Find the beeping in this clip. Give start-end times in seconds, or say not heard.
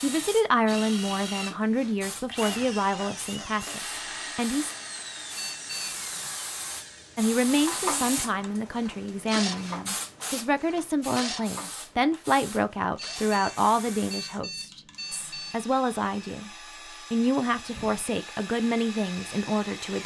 5.3-6.3, 12.9-15.7.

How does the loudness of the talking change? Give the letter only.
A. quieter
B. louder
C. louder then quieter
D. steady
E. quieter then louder
D.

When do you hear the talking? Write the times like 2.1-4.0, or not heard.
0.0-4.7, 7.2-20.0.